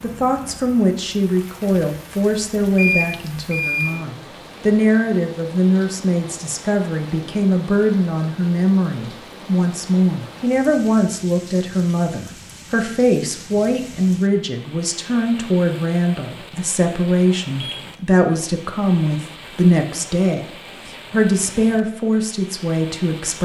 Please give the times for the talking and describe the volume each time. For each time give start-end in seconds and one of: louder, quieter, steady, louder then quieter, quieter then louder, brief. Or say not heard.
0.0-23.4 steady.